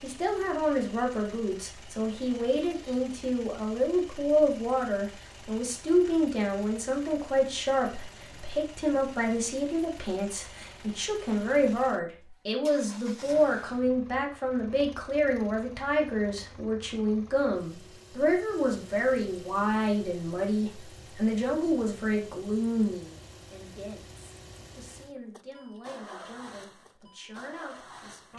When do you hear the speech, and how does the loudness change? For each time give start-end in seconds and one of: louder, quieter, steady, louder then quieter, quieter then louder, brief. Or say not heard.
0.0-28.3 quieter.